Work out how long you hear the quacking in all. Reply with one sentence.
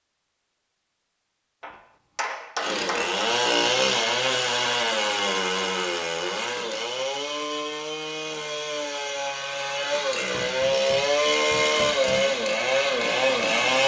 You can't hear the quacking here.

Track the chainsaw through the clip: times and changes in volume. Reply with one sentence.
You can hear the chainsaw from 2.5 to 13.8 s, getting quieter then louder.